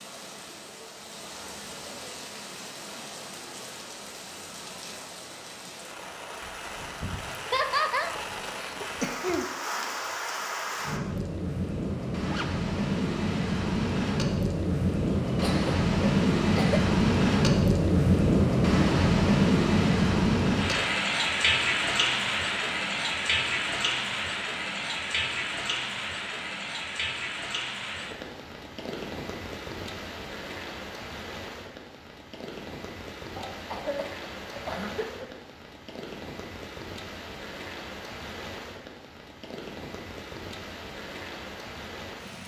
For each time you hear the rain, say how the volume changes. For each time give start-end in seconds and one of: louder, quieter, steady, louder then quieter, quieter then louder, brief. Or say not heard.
0.0-42.4 louder then quieter.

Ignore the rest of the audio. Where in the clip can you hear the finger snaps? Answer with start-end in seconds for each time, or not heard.
not heard.